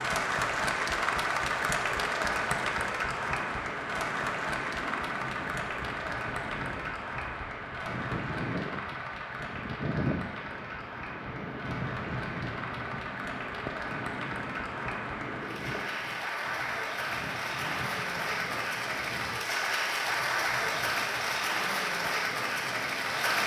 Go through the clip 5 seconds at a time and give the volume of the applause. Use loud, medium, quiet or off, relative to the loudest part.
loud, medium, medium, loud, loud.